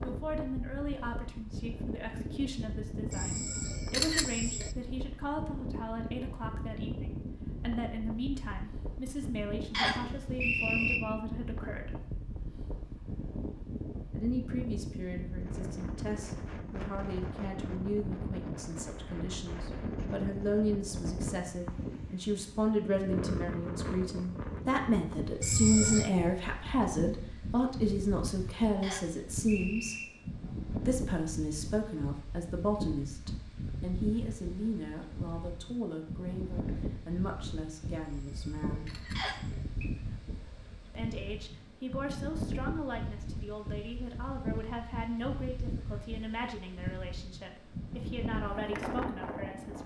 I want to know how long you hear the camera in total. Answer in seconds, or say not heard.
4 s.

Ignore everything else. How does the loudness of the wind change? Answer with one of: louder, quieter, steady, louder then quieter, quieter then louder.
steady.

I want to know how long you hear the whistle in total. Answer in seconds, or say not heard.
3 s.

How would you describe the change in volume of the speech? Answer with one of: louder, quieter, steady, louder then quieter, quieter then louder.
louder then quieter.